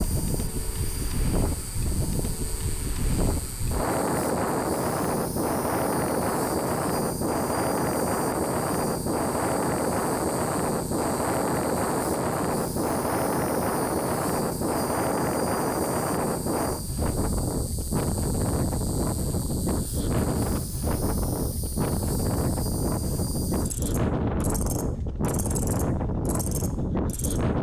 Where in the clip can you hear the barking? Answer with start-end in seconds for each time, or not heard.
not heard.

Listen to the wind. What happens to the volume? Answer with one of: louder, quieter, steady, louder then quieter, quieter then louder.
steady.